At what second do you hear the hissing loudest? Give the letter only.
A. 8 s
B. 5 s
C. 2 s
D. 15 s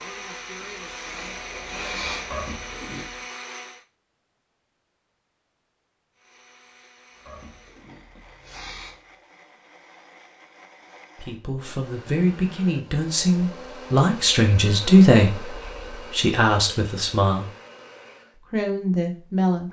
C.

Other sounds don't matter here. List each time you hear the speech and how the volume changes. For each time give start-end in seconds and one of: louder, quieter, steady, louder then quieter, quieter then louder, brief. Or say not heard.
11.2-17.4 louder then quieter
18.5-19.6 brief.